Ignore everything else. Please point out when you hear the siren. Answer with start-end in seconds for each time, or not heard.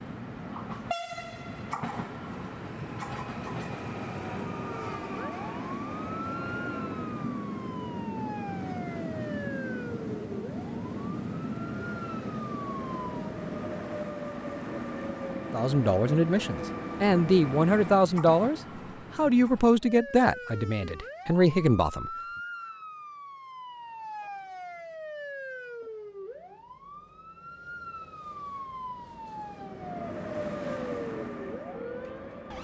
4.7-13.2, 19.8-32.5.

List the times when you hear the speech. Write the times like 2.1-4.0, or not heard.
15.5-22.1.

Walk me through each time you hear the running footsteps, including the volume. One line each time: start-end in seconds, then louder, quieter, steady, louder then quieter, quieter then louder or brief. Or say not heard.
not heard.